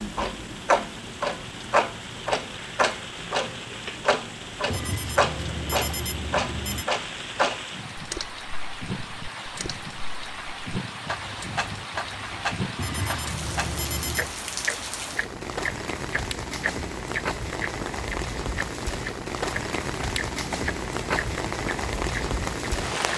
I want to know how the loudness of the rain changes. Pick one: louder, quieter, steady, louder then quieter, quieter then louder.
louder.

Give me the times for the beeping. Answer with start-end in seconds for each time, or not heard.
4.7-6.8, 12.8-14.3.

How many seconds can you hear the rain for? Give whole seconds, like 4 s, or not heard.
23 s.